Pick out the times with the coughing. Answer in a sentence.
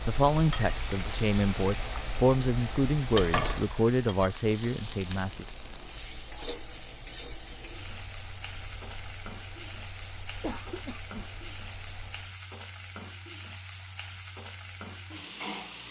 You can hear the coughing from 10.4 to 11.2 s.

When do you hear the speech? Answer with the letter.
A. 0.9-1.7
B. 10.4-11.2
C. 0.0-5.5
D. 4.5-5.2
C.